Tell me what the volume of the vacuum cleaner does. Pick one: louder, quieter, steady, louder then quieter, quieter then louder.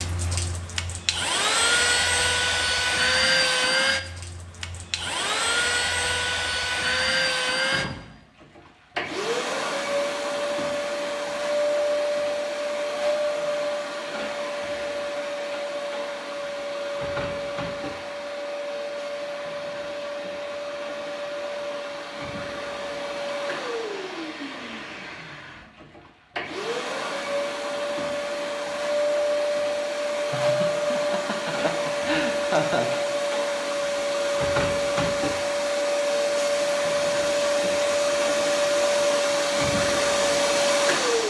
quieter then louder.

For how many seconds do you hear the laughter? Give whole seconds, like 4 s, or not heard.
3 s.